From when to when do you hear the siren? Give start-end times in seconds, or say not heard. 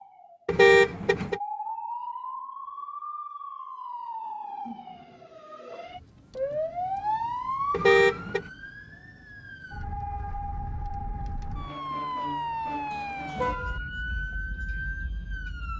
0.0-15.7.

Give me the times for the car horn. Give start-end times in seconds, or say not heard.
0.5-1.4, 7.7-8.4, 13.3-13.8.